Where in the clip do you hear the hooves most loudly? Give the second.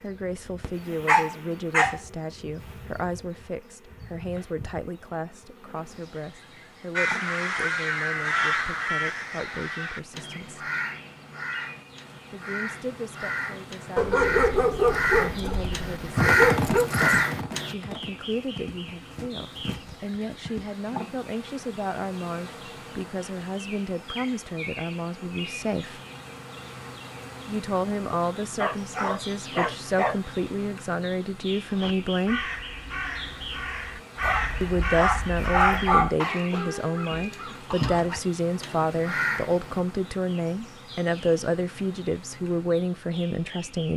16 s.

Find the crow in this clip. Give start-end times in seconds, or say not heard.
7.0-17.8, 31.7-39.9.